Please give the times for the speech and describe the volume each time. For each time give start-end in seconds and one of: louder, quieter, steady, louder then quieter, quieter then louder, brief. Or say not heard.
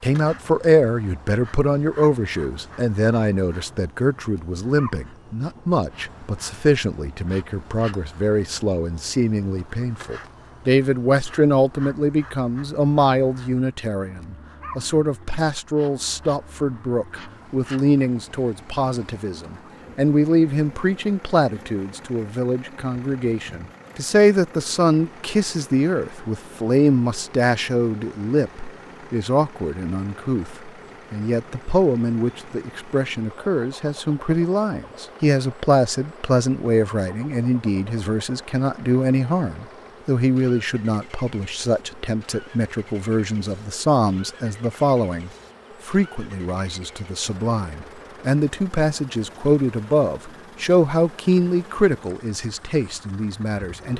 0.0-53.9 steady.